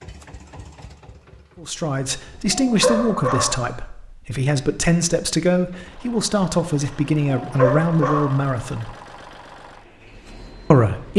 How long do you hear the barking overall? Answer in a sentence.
You can hear the barking for 2 seconds altogether.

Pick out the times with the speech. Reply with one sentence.
The speech can be heard from 1.6 to 8.9 s and from 10.7 to 11.1 s.